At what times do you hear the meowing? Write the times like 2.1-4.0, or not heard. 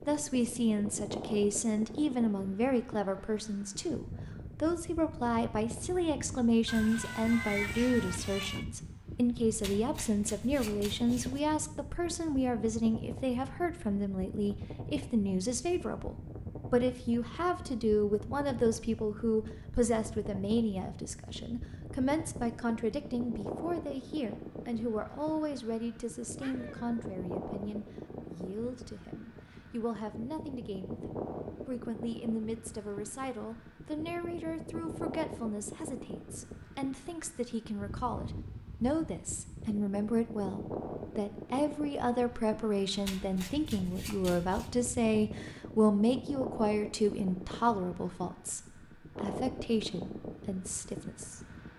6.7-8.7, 26.4-27.1.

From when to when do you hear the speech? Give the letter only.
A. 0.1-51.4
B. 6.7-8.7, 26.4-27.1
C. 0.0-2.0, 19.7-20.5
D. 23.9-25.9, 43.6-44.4
A.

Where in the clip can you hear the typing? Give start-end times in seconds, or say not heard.
not heard.